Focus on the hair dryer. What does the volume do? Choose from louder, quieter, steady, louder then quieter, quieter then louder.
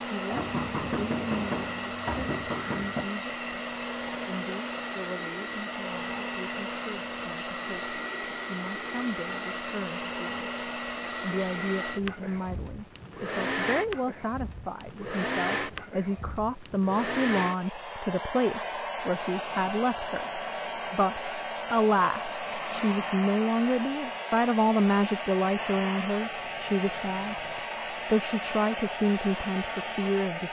steady.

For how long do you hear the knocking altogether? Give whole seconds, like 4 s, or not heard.
4 s.